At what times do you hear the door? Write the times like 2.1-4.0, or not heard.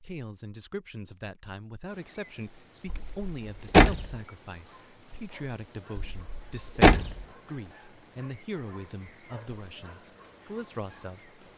2.9-4.2, 6.0-7.2.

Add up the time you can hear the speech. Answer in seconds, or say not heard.
11 s.